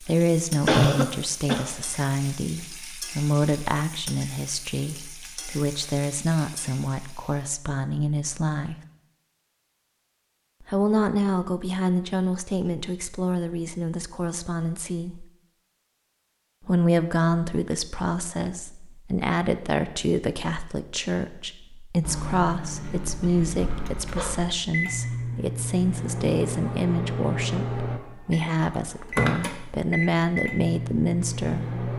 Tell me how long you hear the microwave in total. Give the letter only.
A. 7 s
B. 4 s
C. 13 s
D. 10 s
D.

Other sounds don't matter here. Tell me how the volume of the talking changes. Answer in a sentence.
The loudness of the talking stays about the same.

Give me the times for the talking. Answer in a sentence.
The talking can be heard from 0.0 to 8.8 s, from 10.7 to 15.2 s and from 16.6 to 31.8 s.